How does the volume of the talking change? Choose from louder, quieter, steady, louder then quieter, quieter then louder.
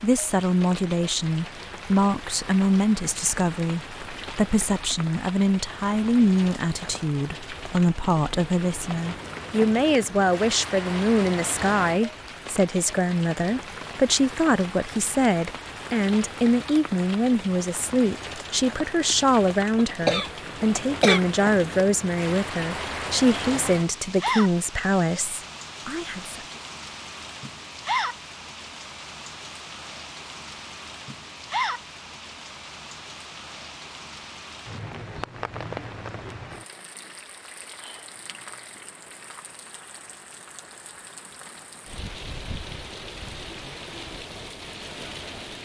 steady.